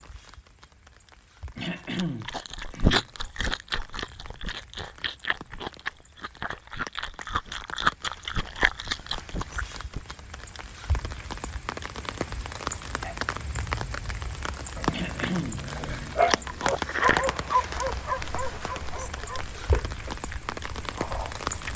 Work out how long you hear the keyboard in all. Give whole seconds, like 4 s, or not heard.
not heard.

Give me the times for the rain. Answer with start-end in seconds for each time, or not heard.
0.0-21.7.